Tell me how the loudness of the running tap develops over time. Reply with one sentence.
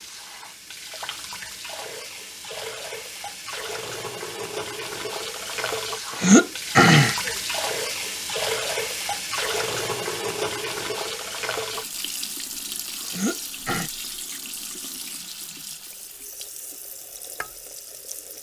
The volume of the running tap goes up, then down.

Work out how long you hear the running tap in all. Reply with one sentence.
The running tap can be heard for 18 seconds in total.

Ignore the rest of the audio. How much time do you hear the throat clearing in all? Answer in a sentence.
You can hear the throat clearing for 2 seconds altogether.